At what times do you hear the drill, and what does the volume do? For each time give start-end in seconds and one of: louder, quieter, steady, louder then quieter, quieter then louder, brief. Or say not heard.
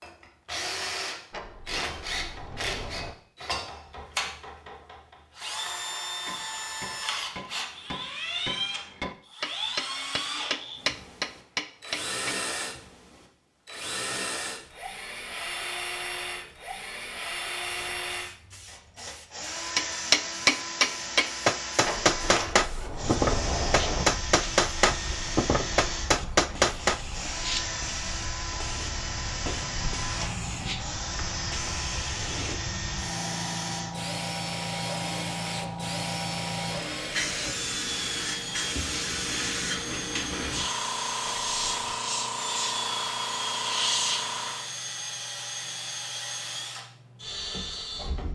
0.0-48.3 steady.